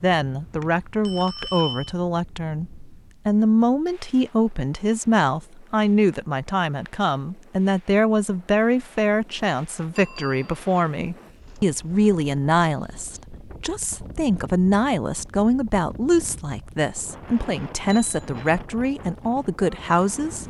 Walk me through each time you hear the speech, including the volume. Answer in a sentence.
You can hear the speech from 0.0 to 20.4 s, at a steady volume.